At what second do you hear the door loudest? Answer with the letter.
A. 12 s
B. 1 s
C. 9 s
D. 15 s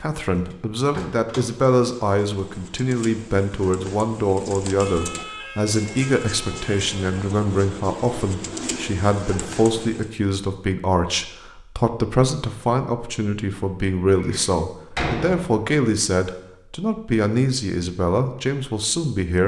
D.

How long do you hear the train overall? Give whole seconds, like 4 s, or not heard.
not heard.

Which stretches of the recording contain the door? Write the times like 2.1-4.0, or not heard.
0.5-1.4, 14.2-15.7.